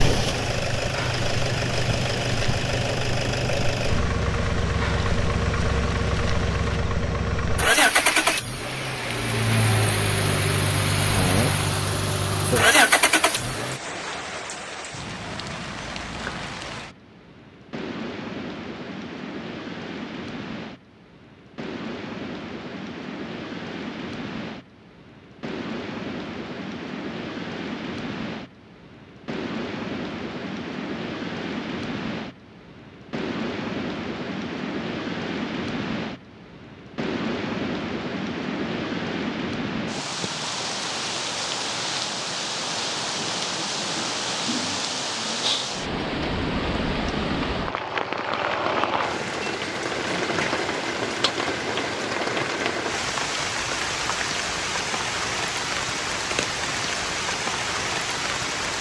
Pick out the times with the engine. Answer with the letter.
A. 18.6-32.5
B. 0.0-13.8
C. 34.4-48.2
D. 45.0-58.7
B.